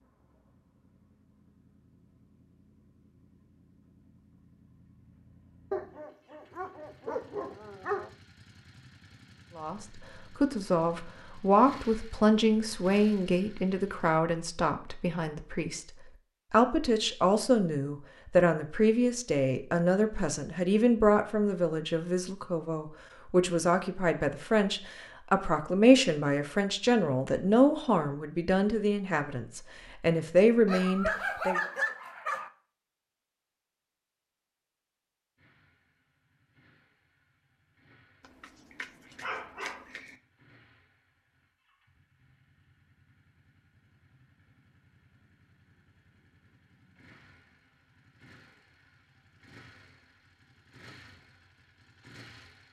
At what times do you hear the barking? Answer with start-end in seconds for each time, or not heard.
5.7-8.1, 30.6-32.5, 38.4-40.1.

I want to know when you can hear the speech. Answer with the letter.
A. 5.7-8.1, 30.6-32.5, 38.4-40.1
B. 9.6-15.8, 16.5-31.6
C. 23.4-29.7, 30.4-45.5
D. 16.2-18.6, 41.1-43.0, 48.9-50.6
B.